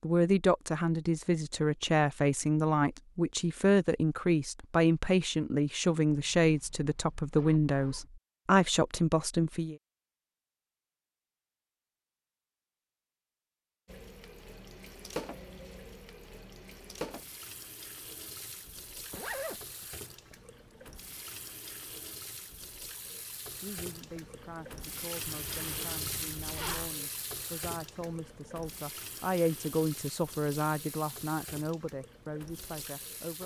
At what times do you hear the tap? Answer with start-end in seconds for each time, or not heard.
13.8-33.4.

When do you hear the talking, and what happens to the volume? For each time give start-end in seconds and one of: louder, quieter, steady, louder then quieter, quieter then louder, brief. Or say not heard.
0.0-9.8 steady
23.6-33.4 louder then quieter.